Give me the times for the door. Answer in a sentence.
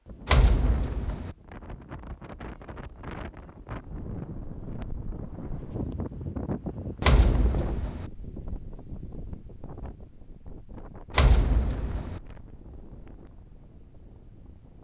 You can hear the door from 0.2 to 1.4 s, from 7.0 to 8.1 s and from 11.1 to 12.2 s.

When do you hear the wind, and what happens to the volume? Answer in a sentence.
You can hear the wind from 0.0 to 14.8 s, getting louder then quieter.